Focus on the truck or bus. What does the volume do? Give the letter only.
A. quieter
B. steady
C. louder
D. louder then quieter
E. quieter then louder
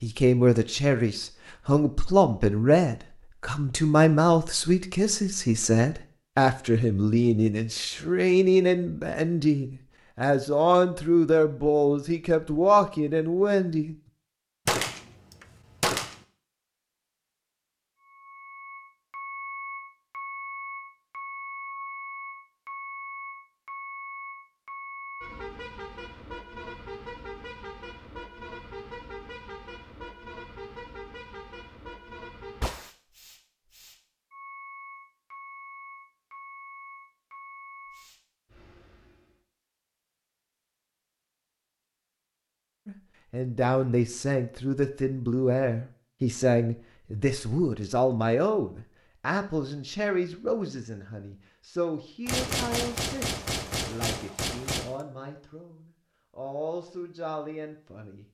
A.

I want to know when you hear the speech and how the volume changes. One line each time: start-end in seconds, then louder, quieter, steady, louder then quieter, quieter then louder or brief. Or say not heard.
0.0-13.9 steady
42.9-58.2 quieter.